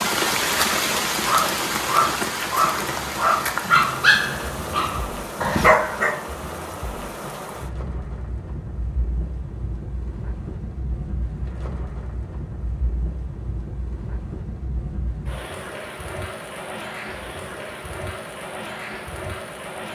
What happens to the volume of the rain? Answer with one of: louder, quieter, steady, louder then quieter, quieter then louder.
quieter.